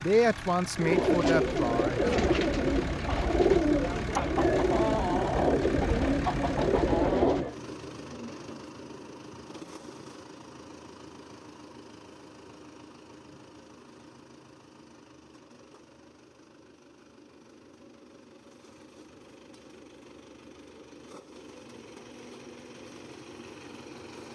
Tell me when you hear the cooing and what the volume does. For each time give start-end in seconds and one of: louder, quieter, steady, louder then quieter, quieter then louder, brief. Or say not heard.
0.8-7.5 steady.